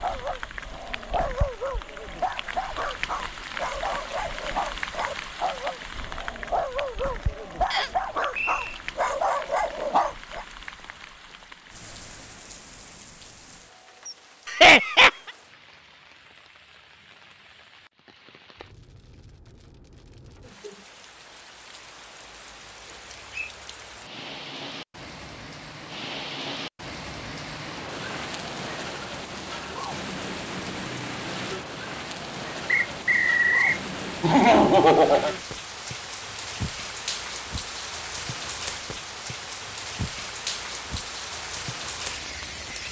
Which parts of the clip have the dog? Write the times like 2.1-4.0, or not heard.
0.0-10.4.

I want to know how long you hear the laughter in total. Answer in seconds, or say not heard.
2 s.